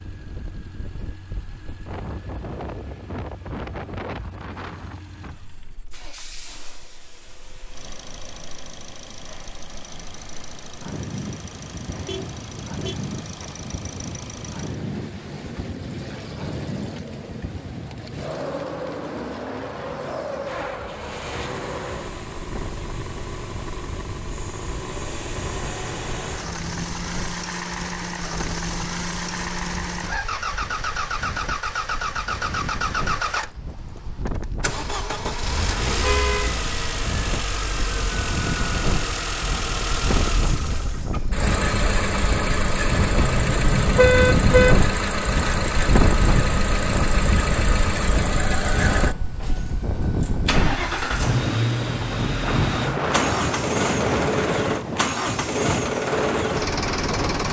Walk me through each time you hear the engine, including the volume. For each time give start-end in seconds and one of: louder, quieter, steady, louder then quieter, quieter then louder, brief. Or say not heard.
0.0-57.4 louder.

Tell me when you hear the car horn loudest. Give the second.
44 s.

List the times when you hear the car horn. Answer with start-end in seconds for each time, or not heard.
12.1-12.9, 35.9-36.5, 43.1-44.9.